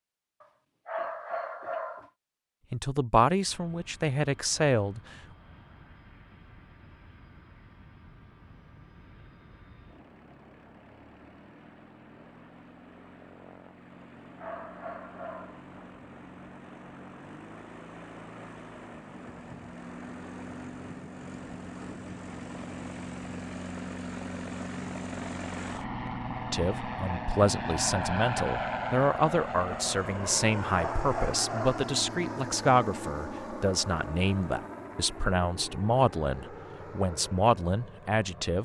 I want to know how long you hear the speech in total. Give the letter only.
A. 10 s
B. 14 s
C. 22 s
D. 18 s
B.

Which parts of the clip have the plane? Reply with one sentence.
The plane can be heard from 3.5 to 38.5 s.